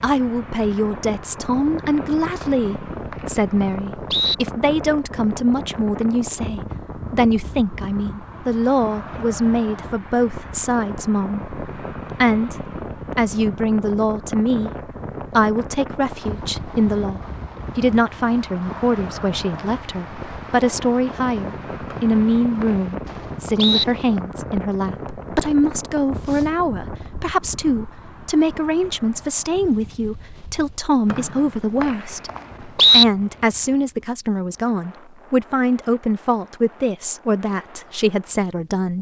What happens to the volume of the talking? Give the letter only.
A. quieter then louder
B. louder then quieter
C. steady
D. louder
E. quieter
C.